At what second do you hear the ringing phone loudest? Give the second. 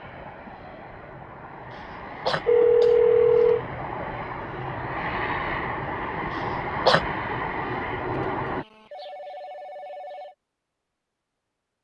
3 s.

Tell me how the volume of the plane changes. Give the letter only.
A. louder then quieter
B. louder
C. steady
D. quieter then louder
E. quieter
B.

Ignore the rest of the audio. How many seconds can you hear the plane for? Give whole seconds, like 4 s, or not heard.
9 s.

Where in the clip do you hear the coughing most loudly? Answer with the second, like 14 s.
7 s.